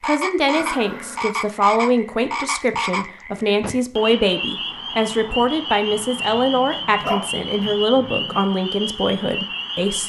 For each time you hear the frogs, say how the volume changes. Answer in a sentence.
The frogs can be heard from 0.0 to 10.0 s, at a steady volume.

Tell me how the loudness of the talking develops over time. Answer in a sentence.
The volume of the talking stays about the same.